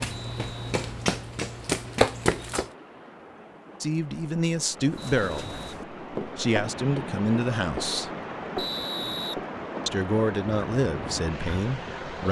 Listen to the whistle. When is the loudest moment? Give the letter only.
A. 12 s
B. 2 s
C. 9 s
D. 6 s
C.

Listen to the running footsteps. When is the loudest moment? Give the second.
2 s.